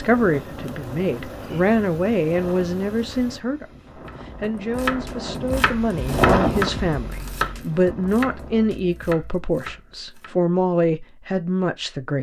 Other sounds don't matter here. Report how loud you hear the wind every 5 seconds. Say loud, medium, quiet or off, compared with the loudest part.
quiet, loud, off.